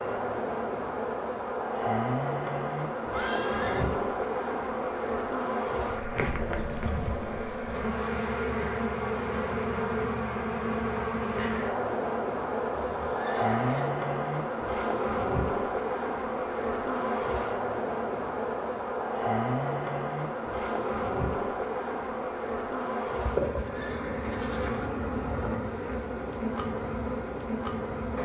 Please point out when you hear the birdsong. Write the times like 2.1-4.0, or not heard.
not heard.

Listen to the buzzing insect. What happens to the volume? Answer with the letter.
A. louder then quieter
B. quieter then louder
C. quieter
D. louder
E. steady
E.